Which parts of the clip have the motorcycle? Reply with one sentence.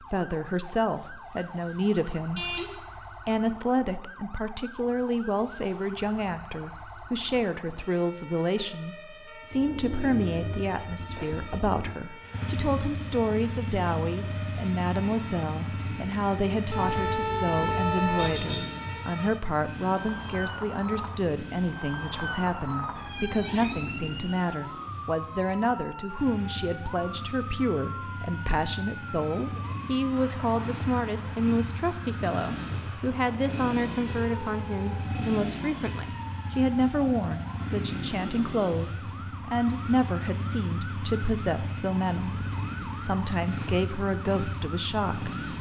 The motorcycle can be heard from 9.4 to 45.5 s.